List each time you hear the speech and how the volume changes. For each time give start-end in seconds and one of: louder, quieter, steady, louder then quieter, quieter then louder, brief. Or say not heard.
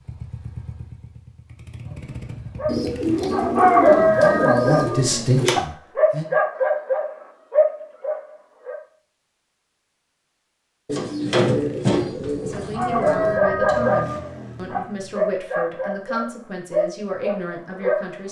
3.9-6.2 brief
12.4-18.2 steady.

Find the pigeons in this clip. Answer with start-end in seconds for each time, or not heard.
2.6-5.6, 10.8-13.4.